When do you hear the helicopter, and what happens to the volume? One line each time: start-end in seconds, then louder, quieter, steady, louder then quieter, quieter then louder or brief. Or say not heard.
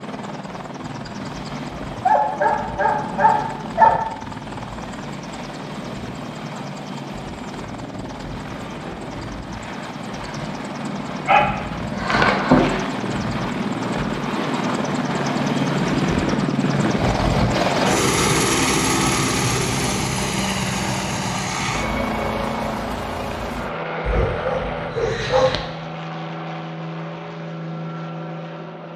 0.0-28.9 louder then quieter.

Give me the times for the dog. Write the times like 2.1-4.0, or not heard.
2.0-4.0, 11.2-12.8, 24.1-25.6.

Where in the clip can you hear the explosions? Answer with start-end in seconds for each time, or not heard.
not heard.